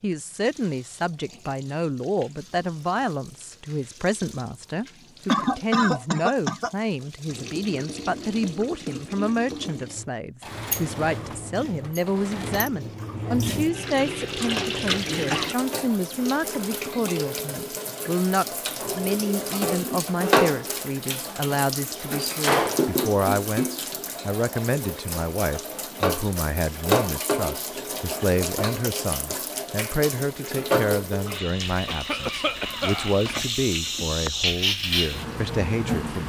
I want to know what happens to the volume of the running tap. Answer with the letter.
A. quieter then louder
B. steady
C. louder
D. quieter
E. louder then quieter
C.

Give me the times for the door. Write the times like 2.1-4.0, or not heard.
10.4-12.7, 22.1-22.9.